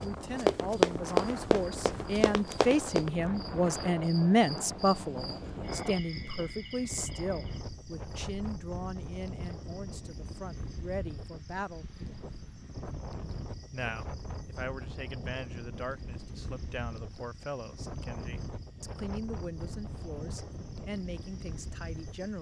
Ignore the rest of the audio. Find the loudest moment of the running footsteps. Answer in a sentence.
The loudest moment of the running footsteps is at 1 second.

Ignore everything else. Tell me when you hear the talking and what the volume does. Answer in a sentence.
The talking can be heard from 0.0 to 11.8 s, getting louder then quieter; and from 13.7 to 22.3 s, at a steady volume.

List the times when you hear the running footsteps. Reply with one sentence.
You can hear the running footsteps from 0.0 to 3.1 s.